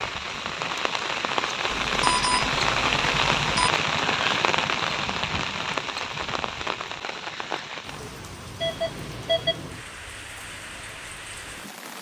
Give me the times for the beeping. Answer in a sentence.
You can hear the beeping from 1.6 to 3.7 s and from 8.6 to 9.7 s.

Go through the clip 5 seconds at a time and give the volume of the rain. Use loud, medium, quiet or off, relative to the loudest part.
loud, medium, quiet.